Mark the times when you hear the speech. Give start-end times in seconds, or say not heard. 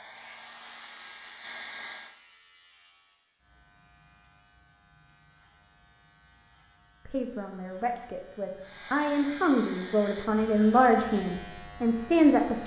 7.0-12.6.